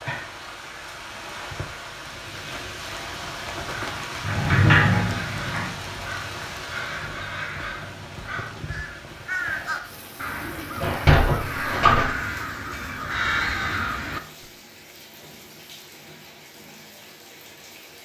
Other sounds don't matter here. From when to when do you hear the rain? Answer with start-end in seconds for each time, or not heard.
0.0-18.0.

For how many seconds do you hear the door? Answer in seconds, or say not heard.
3 s.